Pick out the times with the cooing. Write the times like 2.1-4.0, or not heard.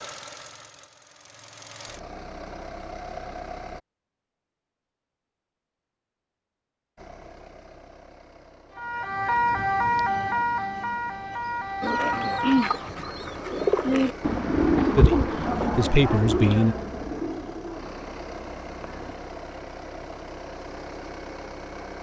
11.8-19.1.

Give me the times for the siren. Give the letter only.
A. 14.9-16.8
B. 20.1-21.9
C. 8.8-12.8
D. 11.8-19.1
C.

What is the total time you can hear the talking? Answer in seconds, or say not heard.
2 s.